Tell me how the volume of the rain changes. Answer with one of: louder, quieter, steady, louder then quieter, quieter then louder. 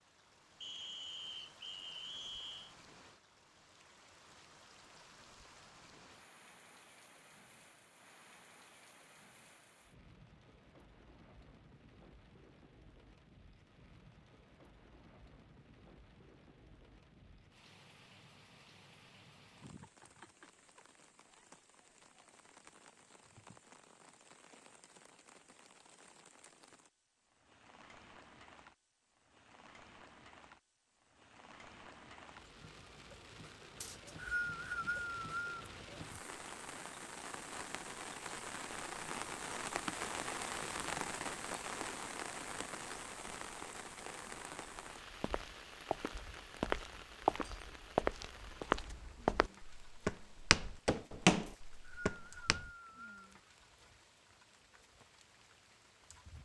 louder then quieter.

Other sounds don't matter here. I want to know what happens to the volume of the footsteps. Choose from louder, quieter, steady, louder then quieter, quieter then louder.
louder.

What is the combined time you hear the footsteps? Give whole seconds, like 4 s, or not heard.
8 s.